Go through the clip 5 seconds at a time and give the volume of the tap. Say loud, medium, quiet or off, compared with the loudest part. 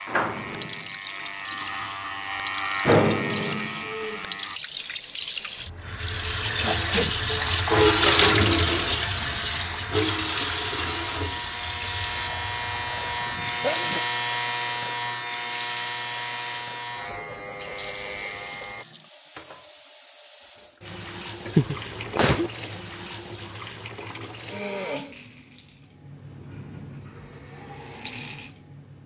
medium, loud, medium, quiet, quiet, quiet.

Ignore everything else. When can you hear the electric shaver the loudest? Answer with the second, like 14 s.
3 s.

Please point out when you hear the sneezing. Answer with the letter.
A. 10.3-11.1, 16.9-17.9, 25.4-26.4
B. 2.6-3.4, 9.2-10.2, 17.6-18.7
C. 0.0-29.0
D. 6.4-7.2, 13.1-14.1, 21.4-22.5
D.